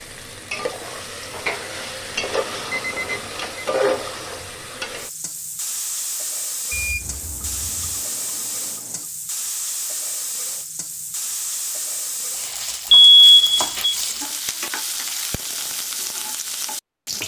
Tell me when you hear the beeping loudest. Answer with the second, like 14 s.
13 s.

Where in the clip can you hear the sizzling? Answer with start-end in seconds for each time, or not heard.
0.0-17.2.